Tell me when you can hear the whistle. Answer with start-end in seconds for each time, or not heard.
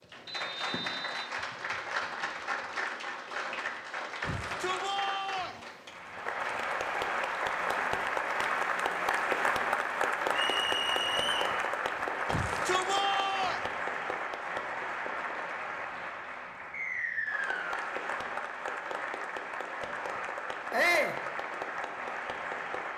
0.2-1.3, 10.3-11.5, 16.7-17.8.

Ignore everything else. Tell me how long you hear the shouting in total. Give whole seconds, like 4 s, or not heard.
3 s.